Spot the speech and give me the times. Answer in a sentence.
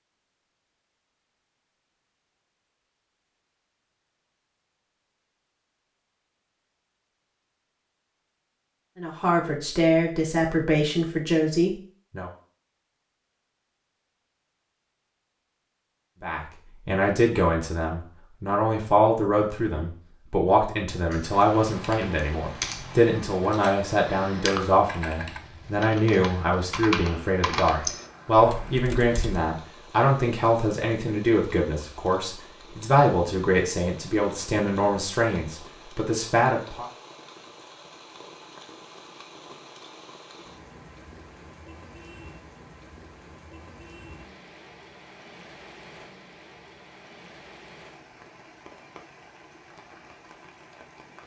The speech can be heard from 9.0 to 12.3 s and from 16.2 to 36.9 s.